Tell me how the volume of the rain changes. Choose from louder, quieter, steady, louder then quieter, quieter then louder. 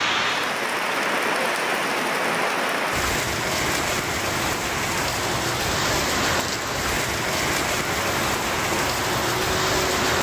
steady.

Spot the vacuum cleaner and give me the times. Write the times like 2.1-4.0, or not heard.
7.8-10.1.